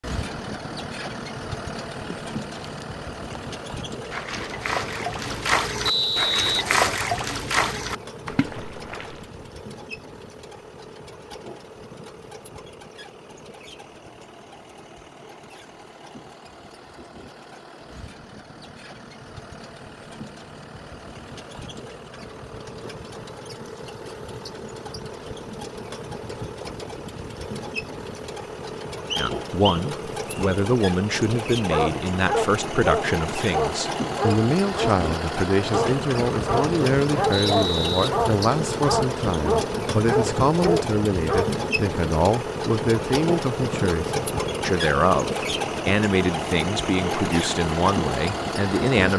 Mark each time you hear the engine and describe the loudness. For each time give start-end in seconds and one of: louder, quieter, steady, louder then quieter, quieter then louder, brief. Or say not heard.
0.0-49.1 quieter then louder.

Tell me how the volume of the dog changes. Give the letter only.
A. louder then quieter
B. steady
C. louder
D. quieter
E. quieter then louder
B.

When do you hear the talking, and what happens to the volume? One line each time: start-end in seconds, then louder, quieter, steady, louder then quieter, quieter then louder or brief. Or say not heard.
29.1-49.1 steady.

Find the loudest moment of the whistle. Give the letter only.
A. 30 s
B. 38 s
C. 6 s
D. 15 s
C.